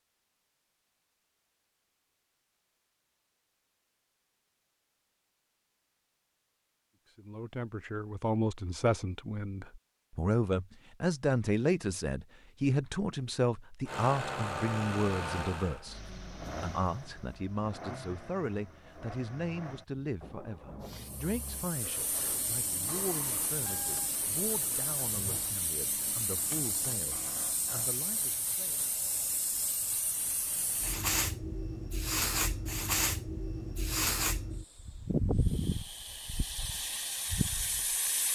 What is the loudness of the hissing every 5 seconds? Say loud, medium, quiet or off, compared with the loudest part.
off, off, off, off, medium, medium, loud, loud.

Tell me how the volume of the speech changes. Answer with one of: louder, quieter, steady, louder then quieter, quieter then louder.
quieter.